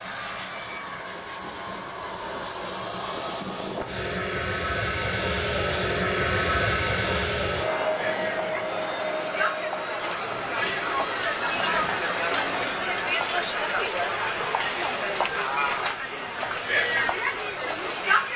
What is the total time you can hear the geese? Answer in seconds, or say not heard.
not heard.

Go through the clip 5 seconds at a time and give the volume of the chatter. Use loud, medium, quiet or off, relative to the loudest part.
off, medium, loud, loud.